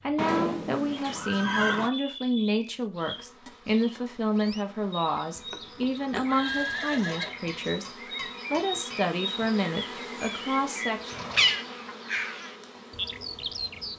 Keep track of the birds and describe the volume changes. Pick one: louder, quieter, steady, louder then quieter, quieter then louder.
louder.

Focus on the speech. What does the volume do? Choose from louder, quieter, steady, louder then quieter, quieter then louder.
steady.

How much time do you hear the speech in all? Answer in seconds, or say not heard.
11 s.